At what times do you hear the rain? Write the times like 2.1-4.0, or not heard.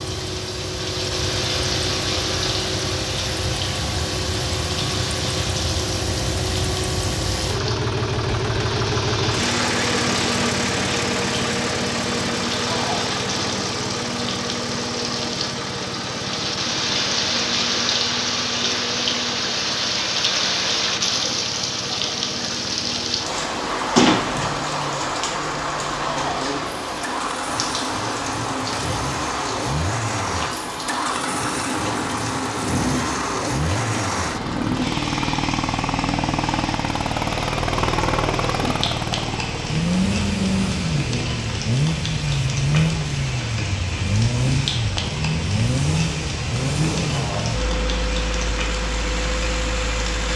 0.0-50.3.